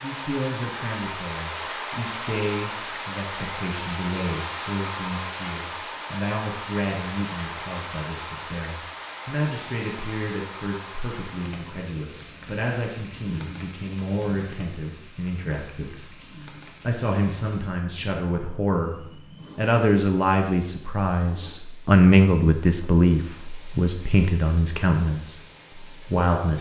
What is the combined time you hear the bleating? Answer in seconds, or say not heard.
not heard.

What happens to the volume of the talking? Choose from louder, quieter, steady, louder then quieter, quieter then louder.
louder.